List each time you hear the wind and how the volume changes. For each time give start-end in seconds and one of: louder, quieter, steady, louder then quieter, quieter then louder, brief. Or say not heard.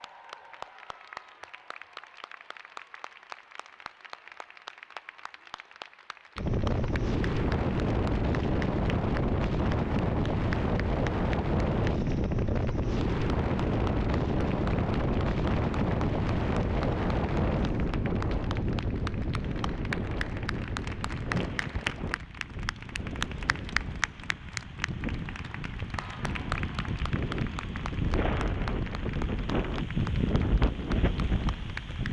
6.3-32.0 quieter then louder.